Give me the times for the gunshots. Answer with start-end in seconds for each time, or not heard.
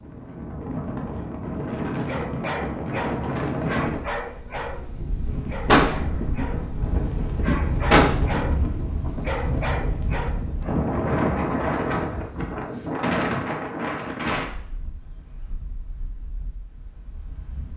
5.2-8.1.